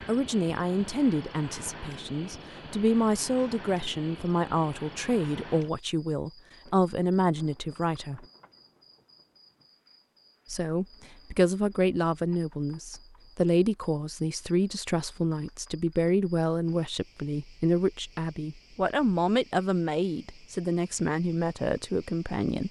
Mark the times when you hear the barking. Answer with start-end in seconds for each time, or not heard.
not heard.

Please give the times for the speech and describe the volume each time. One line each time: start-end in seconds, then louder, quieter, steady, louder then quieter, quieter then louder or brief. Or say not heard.
0.1-8.2 steady
10.5-22.6 steady.